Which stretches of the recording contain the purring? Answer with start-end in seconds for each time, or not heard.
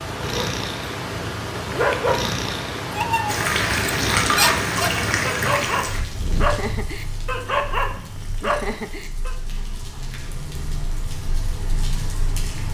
0.0-8.8.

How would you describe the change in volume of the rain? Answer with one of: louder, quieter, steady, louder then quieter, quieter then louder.
quieter then louder.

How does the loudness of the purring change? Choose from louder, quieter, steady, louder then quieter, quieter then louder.
quieter.